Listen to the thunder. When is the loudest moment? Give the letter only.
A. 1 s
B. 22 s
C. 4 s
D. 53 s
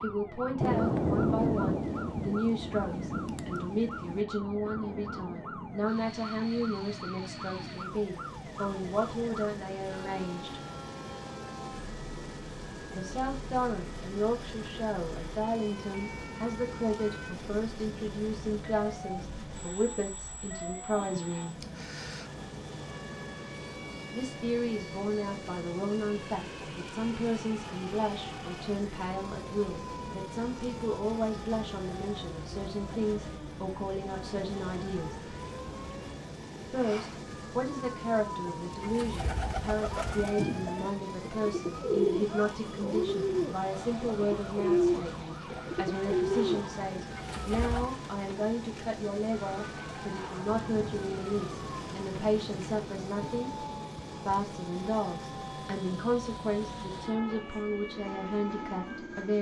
A.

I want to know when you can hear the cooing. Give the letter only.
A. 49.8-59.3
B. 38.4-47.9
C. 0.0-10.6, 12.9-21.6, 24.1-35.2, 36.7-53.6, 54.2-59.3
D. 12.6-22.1
B.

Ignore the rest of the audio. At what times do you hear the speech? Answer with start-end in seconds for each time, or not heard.
0.0-10.6, 12.9-21.6, 24.1-35.2, 36.7-53.6, 54.2-59.3.